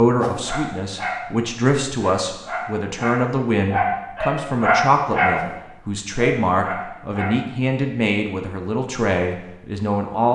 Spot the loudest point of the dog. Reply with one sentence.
The loudest moment of the dog is at 5 seconds.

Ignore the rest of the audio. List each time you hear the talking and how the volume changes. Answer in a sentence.
You can hear the talking from 0.0 to 10.3 s, at a steady volume.